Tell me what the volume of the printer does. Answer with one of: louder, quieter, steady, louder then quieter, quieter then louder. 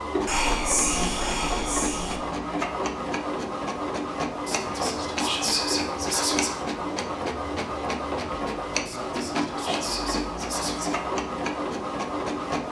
steady.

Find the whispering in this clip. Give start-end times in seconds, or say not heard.
0.2-2.2, 4.5-6.7, 8.8-11.1.